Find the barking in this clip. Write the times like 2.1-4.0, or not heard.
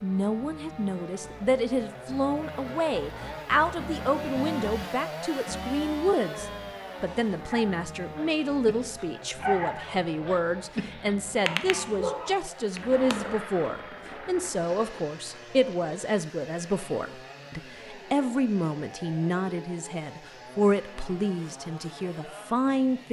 7.4-13.3.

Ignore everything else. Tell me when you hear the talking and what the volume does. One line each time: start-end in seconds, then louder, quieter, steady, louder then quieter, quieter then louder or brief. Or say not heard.
0.0-23.0 steady.